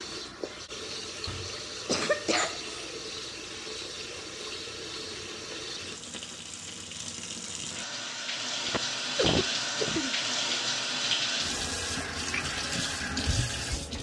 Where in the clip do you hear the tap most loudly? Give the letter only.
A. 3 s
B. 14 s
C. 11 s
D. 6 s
C.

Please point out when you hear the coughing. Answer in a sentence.
The coughing can be heard from 1.2 to 2.9 s and from 8.7 to 10.2 s.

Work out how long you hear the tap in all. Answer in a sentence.
You can hear the tap for 14 seconds altogether.